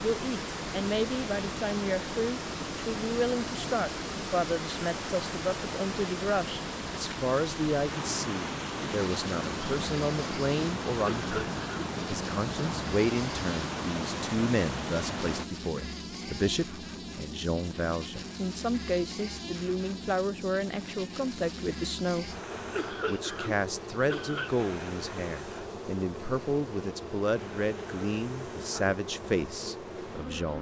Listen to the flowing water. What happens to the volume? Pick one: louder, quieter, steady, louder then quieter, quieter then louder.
steady.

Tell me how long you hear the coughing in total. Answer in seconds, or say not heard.
3 s.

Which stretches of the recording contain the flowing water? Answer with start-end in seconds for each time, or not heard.
0.0-15.4.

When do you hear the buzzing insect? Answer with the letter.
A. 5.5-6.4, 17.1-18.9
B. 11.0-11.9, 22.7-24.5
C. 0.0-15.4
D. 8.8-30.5
D.